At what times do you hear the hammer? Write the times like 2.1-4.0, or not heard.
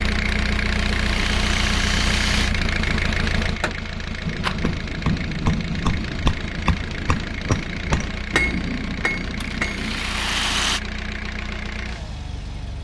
3.5-10.0.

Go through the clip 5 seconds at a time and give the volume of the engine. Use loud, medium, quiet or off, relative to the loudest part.
loud, medium, medium.